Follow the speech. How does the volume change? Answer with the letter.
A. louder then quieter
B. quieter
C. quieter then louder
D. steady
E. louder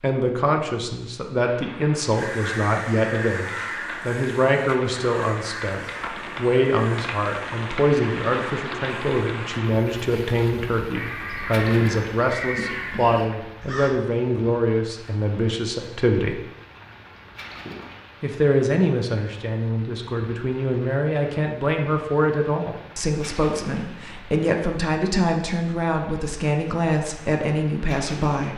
D.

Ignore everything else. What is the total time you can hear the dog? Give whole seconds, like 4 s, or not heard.
not heard.